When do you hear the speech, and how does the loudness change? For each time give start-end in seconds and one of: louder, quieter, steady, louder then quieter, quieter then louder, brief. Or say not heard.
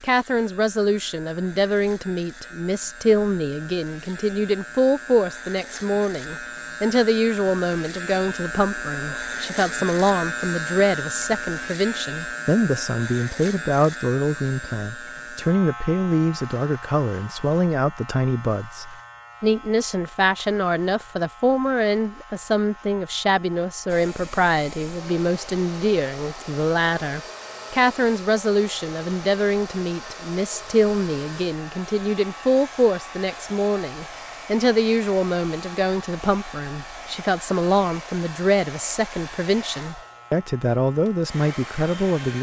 0.0-42.3 steady.